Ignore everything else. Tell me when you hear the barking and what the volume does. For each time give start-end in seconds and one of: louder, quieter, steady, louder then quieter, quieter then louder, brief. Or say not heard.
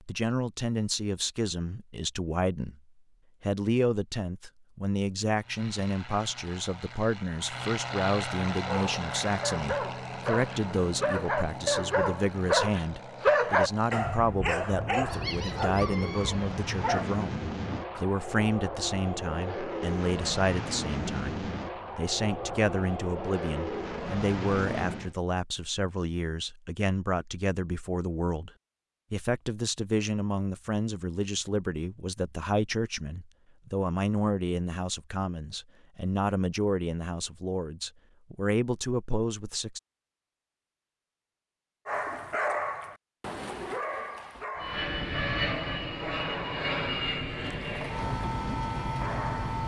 8.6-18.1 louder then quieter
41.9-49.6 quieter.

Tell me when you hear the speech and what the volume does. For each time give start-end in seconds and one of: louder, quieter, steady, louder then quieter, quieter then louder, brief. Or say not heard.
0.0-2.8 brief
3.4-28.5 steady
29.1-39.8 steady.